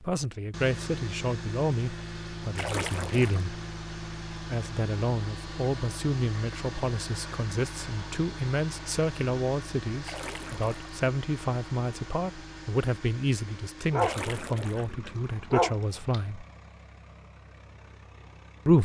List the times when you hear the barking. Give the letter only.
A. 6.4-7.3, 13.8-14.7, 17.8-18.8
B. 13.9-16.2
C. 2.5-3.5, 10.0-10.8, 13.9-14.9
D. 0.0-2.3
B.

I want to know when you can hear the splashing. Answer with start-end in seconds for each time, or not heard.
2.5-3.5, 10.0-10.8, 13.9-14.9.